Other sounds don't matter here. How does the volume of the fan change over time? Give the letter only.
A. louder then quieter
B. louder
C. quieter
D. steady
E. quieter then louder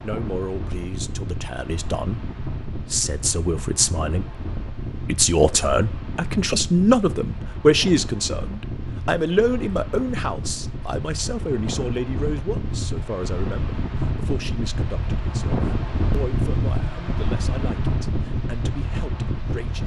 B.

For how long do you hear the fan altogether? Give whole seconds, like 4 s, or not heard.
20 s.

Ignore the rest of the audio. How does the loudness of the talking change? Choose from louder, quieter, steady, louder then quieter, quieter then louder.
louder then quieter.